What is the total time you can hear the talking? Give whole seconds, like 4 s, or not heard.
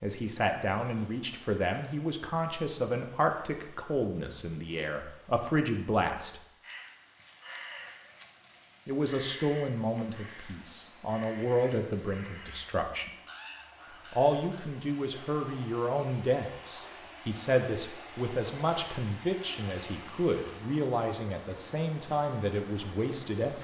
20 s.